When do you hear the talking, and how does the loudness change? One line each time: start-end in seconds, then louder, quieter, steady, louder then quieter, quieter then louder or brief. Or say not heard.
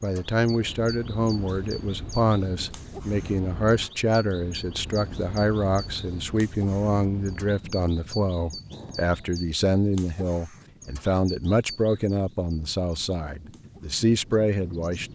0.0-15.0 steady.